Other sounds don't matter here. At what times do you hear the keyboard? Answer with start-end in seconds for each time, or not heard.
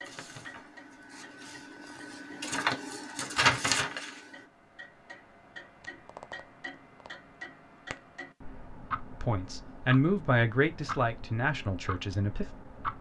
not heard.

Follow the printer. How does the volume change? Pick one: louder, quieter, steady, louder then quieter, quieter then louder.
louder.